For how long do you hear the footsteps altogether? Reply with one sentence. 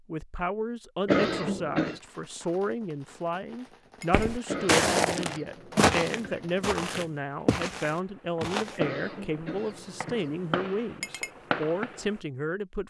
The footsteps can be heard for 5 seconds in total.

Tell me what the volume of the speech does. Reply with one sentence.
The loudness of the speech stays about the same.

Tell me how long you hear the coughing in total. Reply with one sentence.
The coughing can be heard for 5 seconds in total.